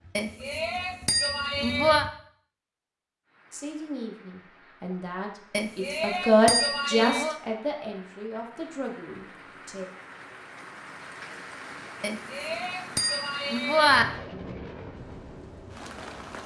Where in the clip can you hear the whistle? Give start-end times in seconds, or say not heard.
not heard.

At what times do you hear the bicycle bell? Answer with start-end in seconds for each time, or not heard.
0.1-2.0, 5.5-7.3, 12.0-14.1.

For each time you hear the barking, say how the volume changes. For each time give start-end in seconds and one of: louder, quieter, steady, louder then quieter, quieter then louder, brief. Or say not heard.
not heard.